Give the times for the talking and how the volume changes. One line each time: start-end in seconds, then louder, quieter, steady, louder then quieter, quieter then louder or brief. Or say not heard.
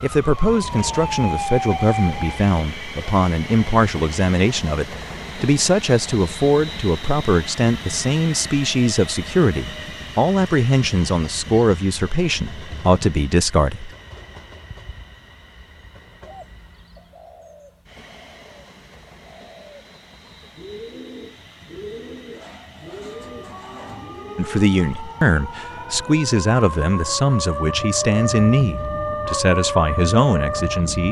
0.0-13.9 steady
24.4-31.0 steady.